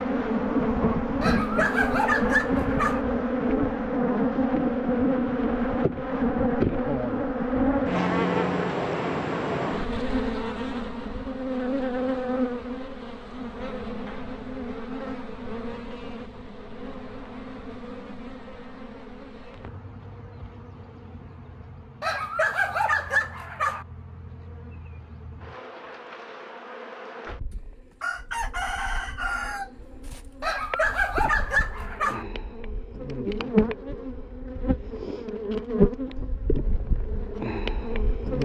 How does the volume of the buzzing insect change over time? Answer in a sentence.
The volume of the buzzing insect goes down, then up.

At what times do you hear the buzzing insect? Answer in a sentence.
The buzzing insect can be heard from 0.0 to 38.4 s.